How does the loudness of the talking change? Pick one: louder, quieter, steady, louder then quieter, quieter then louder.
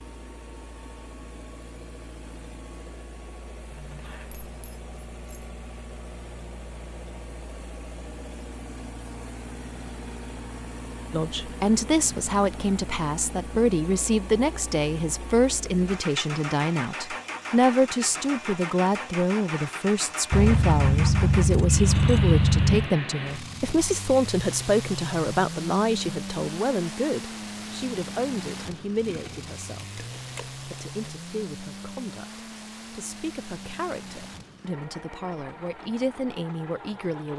quieter.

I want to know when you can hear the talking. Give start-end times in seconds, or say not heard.
11.1-37.3.